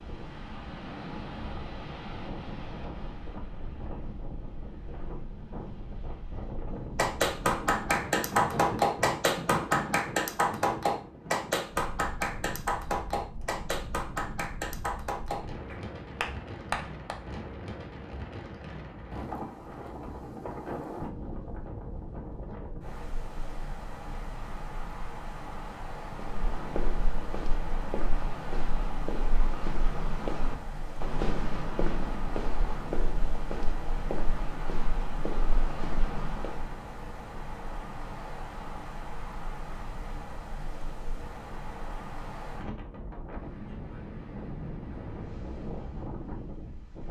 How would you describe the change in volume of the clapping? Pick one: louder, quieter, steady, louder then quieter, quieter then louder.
quieter.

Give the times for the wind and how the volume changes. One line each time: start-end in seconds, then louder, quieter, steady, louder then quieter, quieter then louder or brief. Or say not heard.
0.0-47.0 steady.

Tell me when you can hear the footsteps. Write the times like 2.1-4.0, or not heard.
26.1-36.7.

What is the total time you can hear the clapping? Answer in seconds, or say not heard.
10 s.